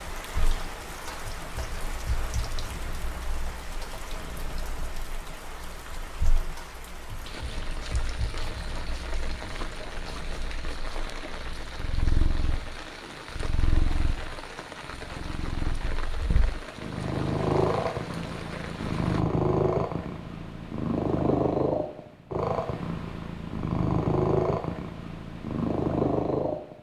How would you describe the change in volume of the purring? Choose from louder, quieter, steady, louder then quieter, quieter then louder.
louder.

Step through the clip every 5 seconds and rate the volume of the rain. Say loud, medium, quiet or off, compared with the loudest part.
loud, loud, loud, loud, off, off.